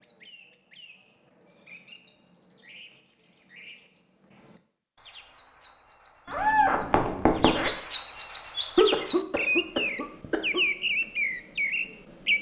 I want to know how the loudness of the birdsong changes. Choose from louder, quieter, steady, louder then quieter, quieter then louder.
louder.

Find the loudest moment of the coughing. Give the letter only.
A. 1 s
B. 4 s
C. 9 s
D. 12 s
C.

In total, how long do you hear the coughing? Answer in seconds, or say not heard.
2 s.